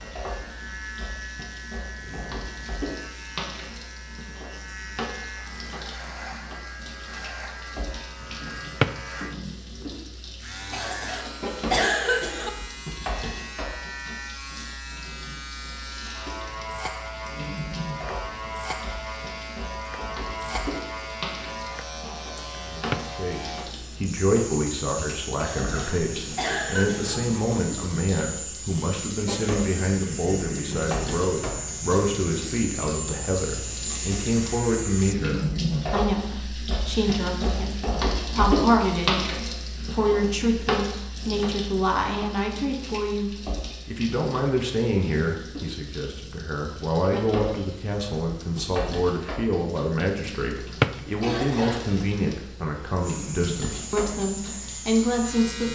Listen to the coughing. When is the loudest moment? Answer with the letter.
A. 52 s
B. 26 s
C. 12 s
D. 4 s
C.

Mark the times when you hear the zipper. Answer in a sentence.
You can't hear the zipper here.